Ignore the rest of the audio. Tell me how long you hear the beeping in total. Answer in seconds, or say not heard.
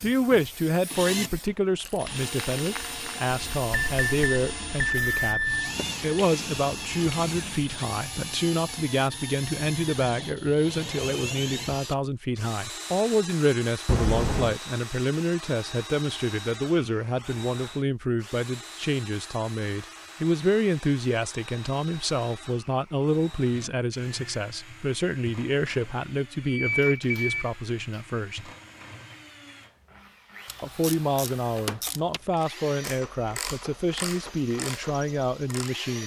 5 s.